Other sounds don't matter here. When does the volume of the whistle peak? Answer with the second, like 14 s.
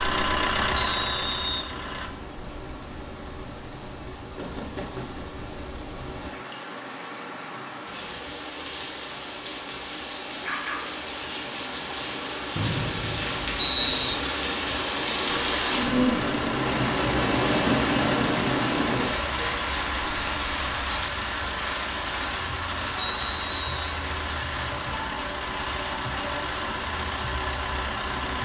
14 s.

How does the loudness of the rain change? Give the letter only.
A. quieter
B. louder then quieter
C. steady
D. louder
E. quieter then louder
B.